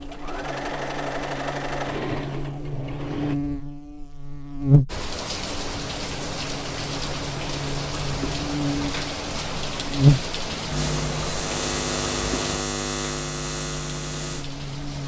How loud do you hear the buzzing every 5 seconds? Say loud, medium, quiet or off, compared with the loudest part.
loud, medium, loud.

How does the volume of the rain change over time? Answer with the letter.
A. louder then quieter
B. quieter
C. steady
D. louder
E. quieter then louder
B.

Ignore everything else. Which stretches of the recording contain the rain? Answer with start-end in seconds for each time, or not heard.
4.8-15.0.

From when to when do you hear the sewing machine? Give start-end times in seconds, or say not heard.
0.0-3.4.